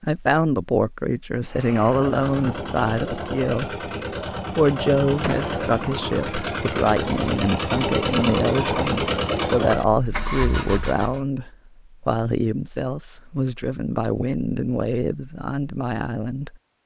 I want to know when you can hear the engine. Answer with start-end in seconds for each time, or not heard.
1.4-11.2.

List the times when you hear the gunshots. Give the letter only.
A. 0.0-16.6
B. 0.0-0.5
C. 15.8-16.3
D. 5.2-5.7
D.